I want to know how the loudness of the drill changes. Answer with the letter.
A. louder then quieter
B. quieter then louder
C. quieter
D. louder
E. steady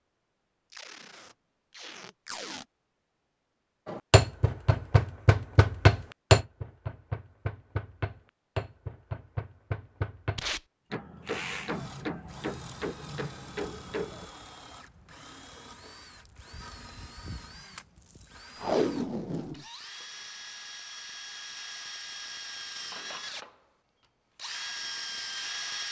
D.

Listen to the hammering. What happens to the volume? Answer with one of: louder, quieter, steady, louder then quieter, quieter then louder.
quieter.